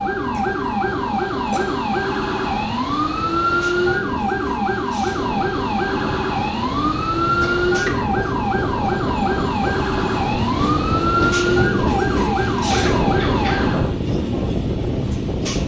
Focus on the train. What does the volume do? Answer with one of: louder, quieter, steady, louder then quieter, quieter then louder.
louder.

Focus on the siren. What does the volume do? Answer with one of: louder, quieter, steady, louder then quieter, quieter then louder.
steady.